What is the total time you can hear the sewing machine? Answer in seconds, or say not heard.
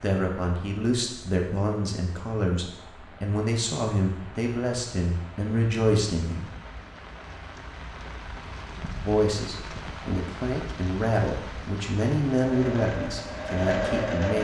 2 s.